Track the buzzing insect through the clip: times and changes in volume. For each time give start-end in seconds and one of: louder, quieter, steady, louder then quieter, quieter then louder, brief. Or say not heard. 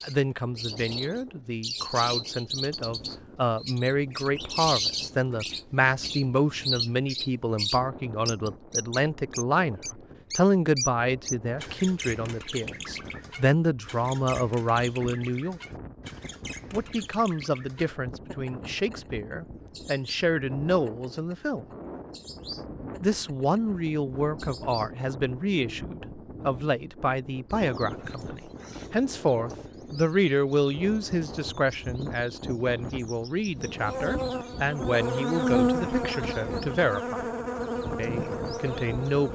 33.5-39.2 louder then quieter.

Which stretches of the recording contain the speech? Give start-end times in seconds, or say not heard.
0.0-15.6, 16.7-21.6, 23.0-37.2, 38.0-39.2.